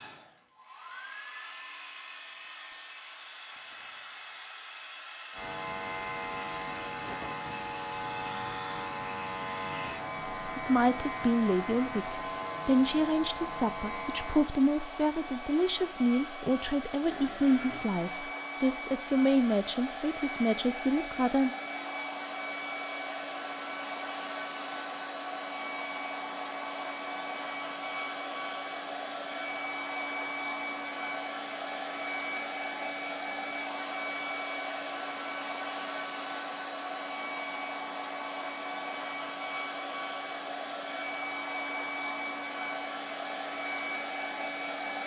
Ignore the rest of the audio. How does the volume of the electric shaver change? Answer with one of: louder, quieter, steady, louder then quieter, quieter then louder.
steady.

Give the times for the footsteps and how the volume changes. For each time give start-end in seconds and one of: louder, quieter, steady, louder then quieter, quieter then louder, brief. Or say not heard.
not heard.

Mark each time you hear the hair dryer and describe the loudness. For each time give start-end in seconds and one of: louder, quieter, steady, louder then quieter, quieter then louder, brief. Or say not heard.
0.0-45.0 louder.